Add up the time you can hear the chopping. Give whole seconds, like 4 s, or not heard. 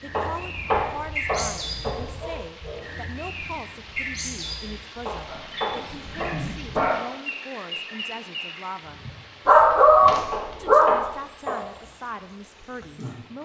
5 s.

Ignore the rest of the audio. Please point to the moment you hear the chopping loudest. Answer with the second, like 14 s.
1 s.